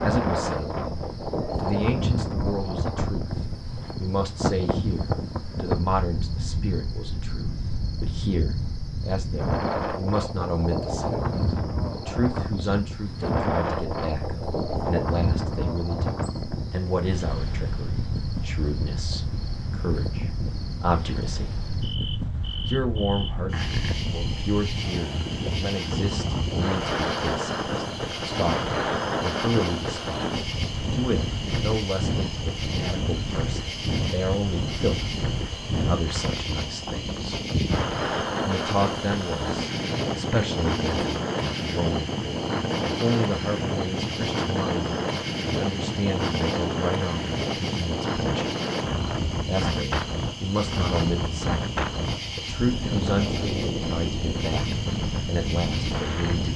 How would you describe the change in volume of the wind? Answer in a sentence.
The volume of the wind stays about the same.